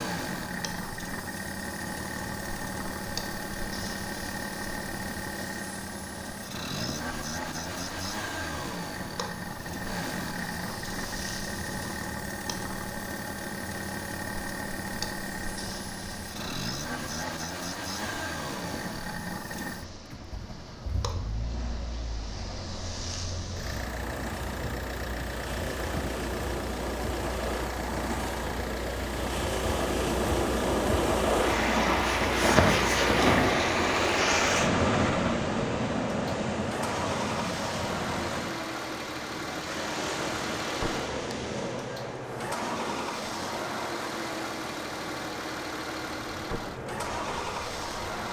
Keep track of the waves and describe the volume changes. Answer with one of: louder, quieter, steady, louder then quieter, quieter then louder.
louder then quieter.